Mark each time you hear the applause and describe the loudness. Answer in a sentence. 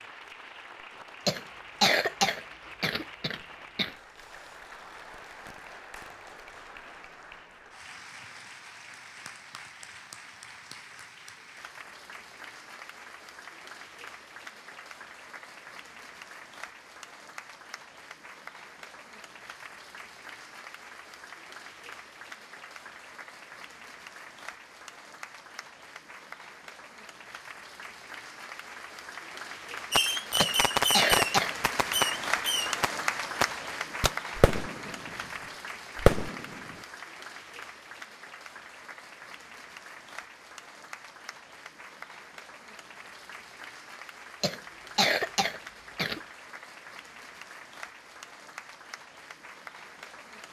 You can hear the applause from 0.0 to 50.4 s, getting louder then quieter.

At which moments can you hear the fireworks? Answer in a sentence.
You can hear the fireworks from 29.9 to 35.1 s and from 36.0 to 36.8 s.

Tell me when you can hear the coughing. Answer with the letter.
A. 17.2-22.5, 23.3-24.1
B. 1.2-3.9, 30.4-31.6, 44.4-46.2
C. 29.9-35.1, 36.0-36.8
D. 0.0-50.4
B.